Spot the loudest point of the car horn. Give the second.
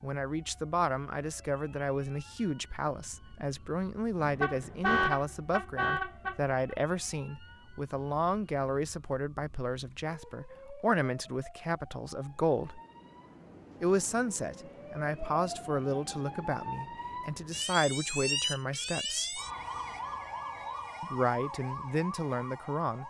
5 s.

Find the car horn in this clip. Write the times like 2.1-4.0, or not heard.
4.2-6.8.